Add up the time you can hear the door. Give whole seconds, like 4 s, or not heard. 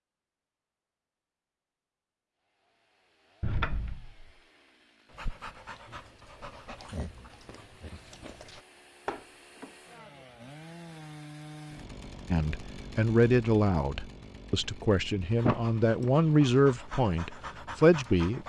2 s.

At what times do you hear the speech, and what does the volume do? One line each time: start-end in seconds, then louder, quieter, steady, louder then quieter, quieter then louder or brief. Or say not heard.
12.3-18.4 quieter then louder.